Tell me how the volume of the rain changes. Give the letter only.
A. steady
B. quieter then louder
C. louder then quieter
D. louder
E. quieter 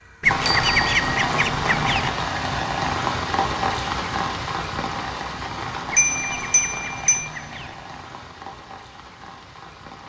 E.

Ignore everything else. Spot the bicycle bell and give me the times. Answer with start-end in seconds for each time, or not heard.
0.5-1.1, 6.0-7.3.